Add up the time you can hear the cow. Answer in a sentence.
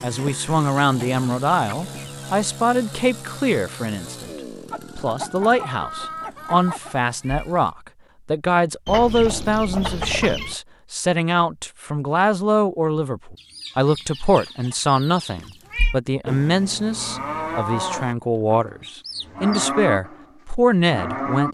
You can hear the cow for 5 seconds altogether.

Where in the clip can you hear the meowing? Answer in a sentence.
You can hear the meowing from 7.2 to 7.7 s and from 15.3 to 15.9 s.